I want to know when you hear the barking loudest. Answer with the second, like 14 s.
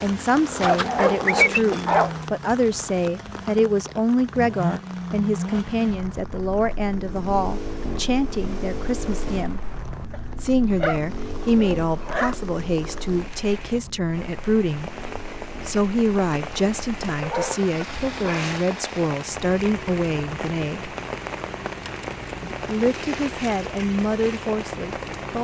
1 s.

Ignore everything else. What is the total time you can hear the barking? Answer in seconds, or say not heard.
5 s.